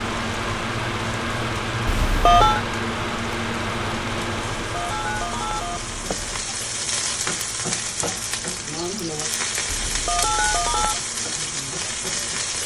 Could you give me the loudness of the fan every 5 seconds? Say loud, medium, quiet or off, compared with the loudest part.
loud, medium, quiet.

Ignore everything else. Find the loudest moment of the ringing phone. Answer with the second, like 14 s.
2 s.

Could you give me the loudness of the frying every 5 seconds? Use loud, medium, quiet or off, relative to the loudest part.
quiet, loud, loud.